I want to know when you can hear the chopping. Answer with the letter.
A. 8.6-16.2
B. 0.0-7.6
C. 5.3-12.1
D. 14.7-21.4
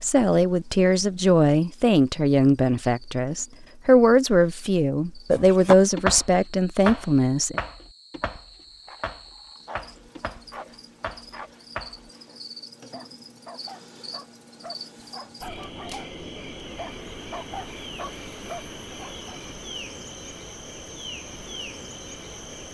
C.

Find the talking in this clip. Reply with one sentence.
The talking can be heard from 0.0 to 7.6 s.